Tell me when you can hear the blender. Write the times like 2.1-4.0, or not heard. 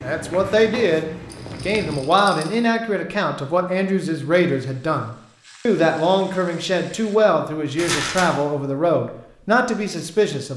not heard.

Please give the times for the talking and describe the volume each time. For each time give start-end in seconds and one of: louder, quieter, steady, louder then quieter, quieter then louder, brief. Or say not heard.
0.0-10.5 steady.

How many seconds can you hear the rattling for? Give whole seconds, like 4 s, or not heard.
2 s.